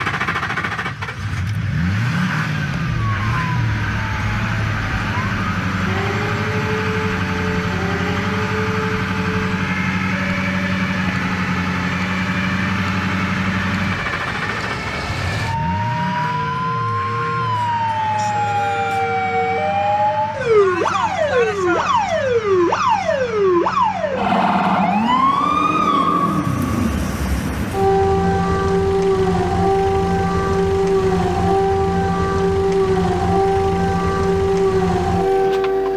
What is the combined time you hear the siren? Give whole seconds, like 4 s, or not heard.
33 s.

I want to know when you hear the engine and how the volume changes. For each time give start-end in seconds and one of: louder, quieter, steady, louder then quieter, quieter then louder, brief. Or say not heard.
0.0-35.9 quieter.